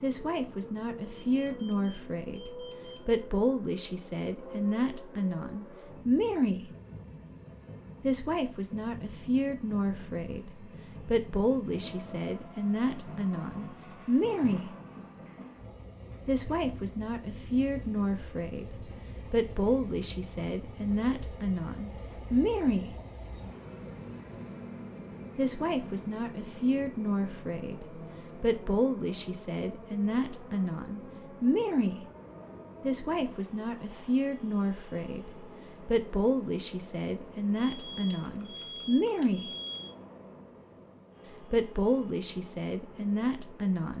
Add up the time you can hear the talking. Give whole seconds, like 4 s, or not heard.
36 s.